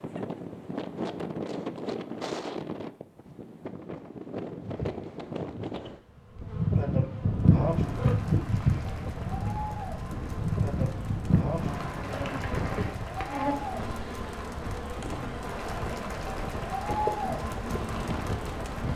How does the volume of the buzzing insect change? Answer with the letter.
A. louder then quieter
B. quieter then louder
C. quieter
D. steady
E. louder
C.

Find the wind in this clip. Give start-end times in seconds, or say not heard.
0.0-18.9.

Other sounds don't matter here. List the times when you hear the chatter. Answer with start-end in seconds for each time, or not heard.
7.5-18.9.